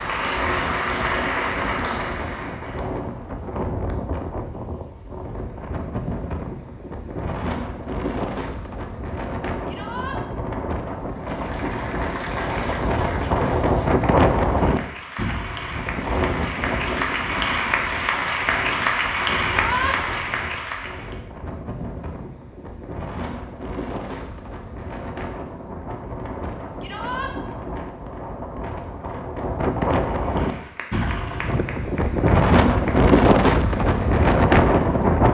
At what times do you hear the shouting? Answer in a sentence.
The shouting can be heard from 9.7 to 10.2 s, from 19.5 to 19.9 s and from 26.8 to 27.3 s.